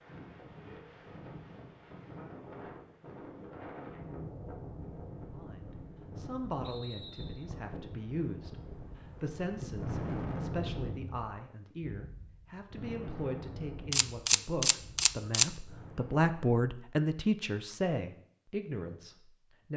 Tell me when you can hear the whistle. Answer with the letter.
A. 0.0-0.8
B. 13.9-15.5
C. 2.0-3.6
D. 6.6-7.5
D.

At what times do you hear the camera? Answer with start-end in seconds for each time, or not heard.
13.9-15.5.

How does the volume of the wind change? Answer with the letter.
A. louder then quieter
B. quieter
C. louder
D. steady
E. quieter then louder
A.